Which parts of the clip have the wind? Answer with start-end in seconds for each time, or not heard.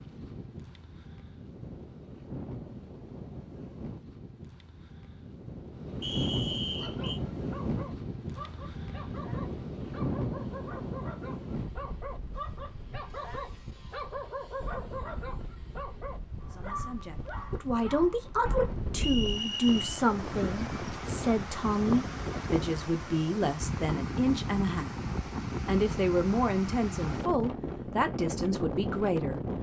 0.0-29.5.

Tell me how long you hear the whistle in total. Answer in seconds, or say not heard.
2 s.